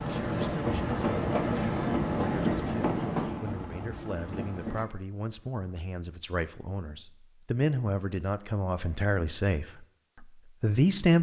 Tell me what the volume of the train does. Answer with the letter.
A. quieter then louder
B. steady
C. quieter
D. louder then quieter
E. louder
C.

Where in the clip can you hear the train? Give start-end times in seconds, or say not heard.
0.0-4.8.